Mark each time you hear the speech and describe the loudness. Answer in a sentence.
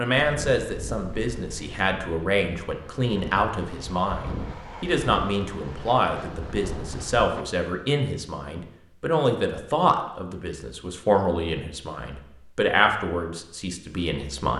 The speech can be heard from 0.0 to 14.5 s, at a steady volume.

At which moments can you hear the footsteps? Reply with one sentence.
The footsteps can't be heard in this clip.